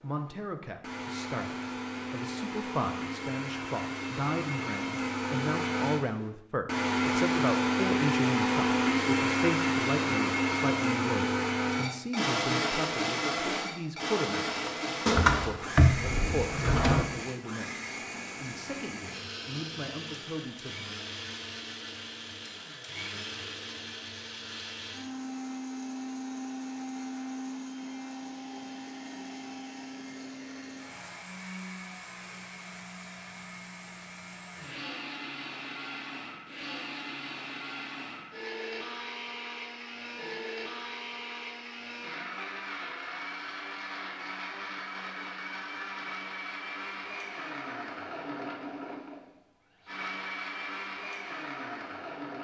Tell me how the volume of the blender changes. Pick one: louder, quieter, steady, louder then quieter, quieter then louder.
quieter.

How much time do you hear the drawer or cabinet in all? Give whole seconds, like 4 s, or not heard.
2 s.